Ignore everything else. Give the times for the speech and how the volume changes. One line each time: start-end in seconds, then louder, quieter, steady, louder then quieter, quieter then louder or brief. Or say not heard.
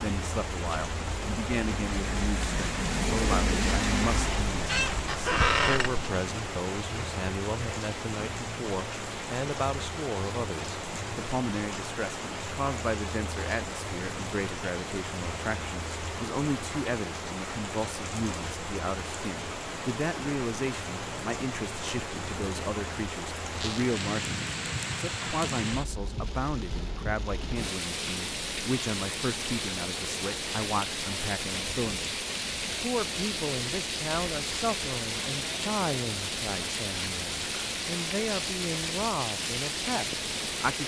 0.0-40.8 steady.